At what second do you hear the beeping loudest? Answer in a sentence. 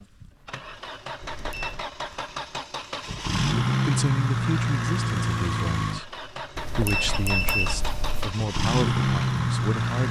The loudest moment of the beeping is at 7 seconds.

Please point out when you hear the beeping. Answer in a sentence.
The beeping can be heard from 1.2 to 1.9 s and from 6.5 to 8.3 s.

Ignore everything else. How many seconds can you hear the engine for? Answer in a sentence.
The engine can be heard for 10 seconds in total.